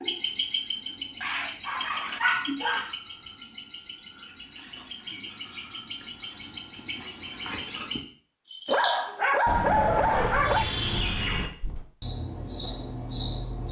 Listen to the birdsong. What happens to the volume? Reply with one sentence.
The loudness of the birdsong goes down, then up.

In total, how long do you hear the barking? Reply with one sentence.
The barking can be heard for 4 seconds in total.